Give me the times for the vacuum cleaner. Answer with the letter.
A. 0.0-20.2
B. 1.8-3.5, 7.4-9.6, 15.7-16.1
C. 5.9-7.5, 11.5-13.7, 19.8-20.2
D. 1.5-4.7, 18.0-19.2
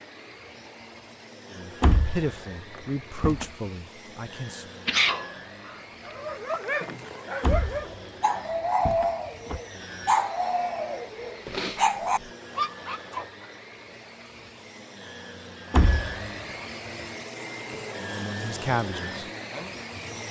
A.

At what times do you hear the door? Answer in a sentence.
The door can be heard from 1.8 to 3.5 s, from 7.4 to 9.6 s and from 15.7 to 16.1 s.